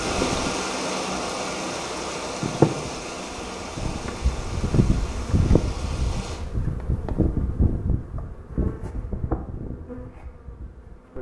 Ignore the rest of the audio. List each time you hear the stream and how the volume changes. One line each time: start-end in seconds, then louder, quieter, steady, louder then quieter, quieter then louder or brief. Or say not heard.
0.0-6.5 quieter.